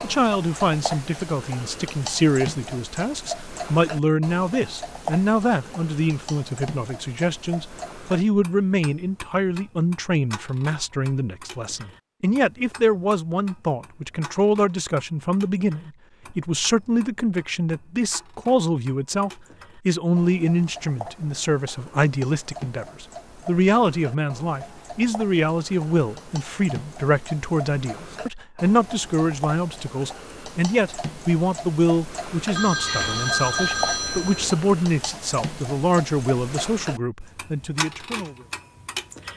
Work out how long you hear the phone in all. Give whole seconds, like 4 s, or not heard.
2 s.